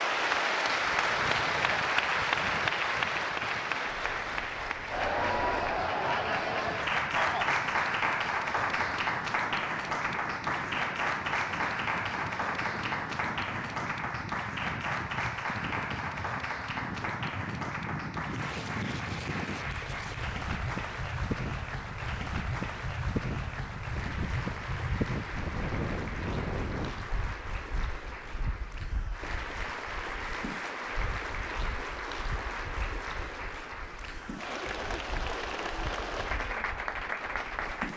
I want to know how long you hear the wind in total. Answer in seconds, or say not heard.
38 s.